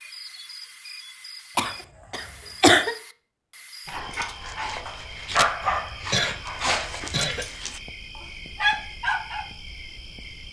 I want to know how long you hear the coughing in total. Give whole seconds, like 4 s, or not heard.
3 s.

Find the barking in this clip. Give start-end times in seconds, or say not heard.
3.9-9.4.